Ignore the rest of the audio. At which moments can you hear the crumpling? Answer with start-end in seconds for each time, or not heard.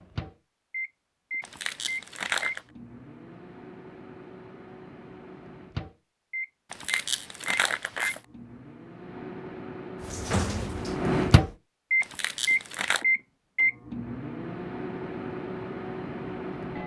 1.4-2.6, 6.7-8.2, 12.0-13.1.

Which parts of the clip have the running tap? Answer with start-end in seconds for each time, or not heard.
10.0-11.6.